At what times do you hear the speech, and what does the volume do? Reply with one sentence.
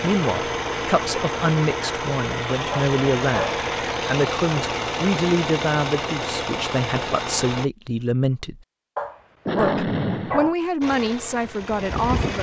The speech can be heard from 0.0 to 8.6 s, at a steady volume; and briefly from 9.6 to 12.3 s.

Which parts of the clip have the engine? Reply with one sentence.
You can hear the engine from 0.0 to 7.7 s and from 10.8 to 12.3 s.